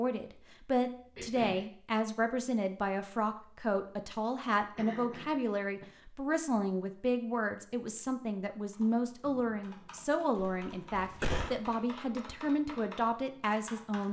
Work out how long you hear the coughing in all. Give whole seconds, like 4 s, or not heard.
3 s.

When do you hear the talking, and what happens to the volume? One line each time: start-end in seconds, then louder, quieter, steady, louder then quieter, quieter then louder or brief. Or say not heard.
0.0-14.0 steady.